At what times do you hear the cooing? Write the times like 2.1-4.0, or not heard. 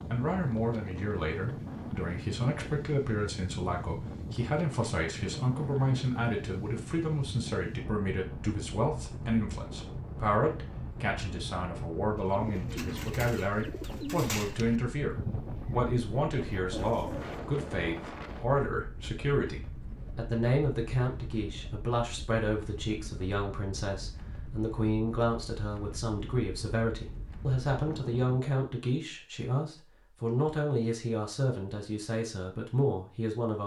12.2-17.9.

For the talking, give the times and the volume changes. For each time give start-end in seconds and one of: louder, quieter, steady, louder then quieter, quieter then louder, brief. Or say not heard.
0.1-33.6 steady.